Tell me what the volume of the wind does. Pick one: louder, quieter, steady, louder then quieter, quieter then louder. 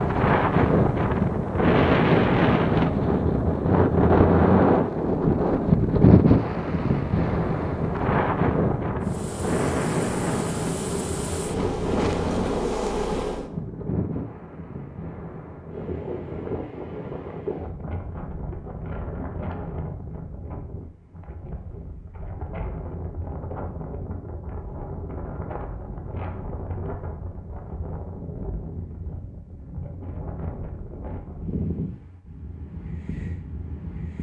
quieter.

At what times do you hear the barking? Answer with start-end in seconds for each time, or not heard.
not heard.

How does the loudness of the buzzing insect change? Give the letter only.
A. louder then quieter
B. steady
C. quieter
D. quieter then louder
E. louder
E.